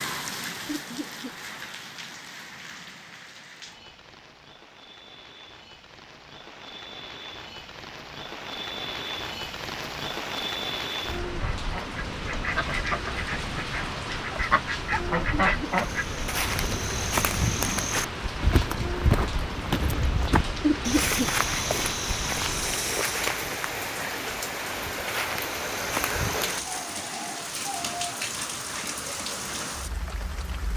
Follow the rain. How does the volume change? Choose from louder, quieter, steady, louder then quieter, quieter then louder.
louder.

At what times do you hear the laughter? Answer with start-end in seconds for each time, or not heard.
0.7-1.4, 15.4-15.9, 20.6-21.3.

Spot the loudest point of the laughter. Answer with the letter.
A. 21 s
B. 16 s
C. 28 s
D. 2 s
A.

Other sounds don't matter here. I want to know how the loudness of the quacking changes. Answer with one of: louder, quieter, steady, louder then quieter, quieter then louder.
louder then quieter.